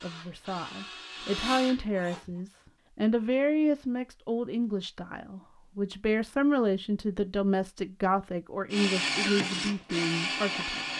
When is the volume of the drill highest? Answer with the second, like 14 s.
9 s.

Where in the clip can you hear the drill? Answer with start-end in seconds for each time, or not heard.
0.0-2.4, 8.7-10.9.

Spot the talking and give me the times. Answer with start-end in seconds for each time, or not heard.
0.0-10.9.